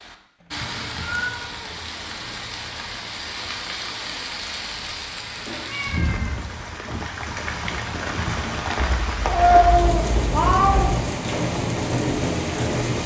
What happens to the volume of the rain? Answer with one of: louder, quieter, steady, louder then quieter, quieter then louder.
louder.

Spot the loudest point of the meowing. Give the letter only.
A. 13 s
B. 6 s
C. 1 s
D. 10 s
D.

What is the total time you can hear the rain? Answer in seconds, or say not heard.
13 s.